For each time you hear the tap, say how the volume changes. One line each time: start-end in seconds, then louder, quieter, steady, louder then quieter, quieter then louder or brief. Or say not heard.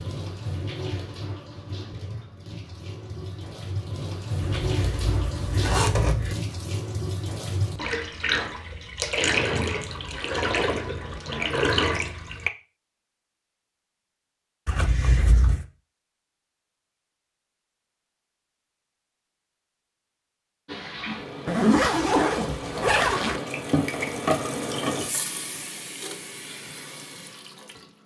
0.0-12.5 louder
20.6-28.0 louder then quieter.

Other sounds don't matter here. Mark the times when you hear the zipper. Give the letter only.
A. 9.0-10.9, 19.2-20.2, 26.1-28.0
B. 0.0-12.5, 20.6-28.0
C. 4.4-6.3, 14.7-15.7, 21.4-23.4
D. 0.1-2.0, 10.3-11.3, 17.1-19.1
C.